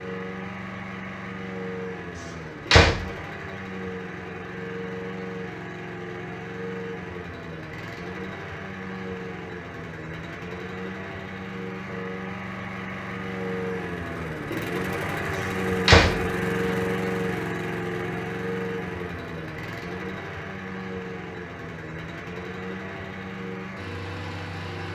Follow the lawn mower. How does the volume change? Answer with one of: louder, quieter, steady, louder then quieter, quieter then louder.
louder then quieter.